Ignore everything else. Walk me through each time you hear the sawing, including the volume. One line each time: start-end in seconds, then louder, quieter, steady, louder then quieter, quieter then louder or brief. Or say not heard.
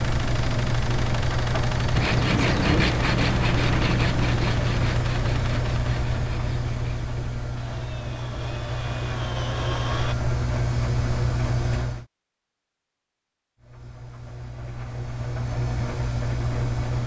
1.9-10.2 quieter then louder.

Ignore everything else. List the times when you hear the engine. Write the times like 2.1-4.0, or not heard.
0.0-12.1, 13.6-17.0.